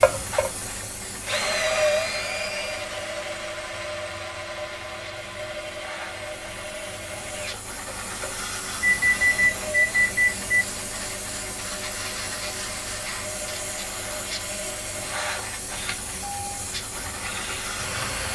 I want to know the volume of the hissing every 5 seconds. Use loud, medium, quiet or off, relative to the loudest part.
medium, loud, loud, loud.